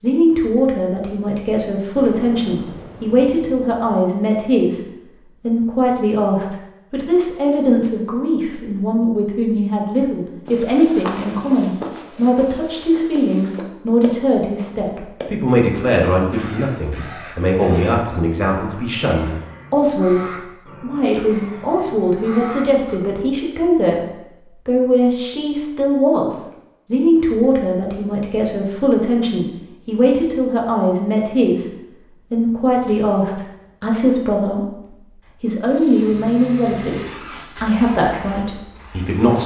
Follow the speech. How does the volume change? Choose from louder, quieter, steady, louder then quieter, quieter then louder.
steady.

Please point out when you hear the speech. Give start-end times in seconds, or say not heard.
0.0-24.0, 24.6-31.7, 32.3-39.4.